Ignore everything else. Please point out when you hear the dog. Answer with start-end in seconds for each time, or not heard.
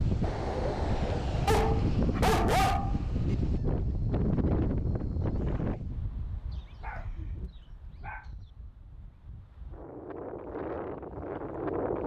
1.4-3.4, 6.5-8.5.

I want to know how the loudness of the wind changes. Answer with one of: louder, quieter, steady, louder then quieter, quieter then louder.
quieter then louder.